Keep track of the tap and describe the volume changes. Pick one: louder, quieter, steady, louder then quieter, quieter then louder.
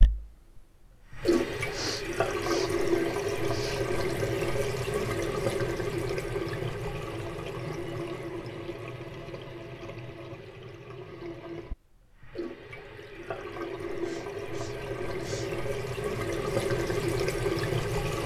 quieter then louder.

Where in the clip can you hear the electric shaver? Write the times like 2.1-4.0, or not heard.
not heard.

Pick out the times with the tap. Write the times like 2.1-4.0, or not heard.
0.0-18.2.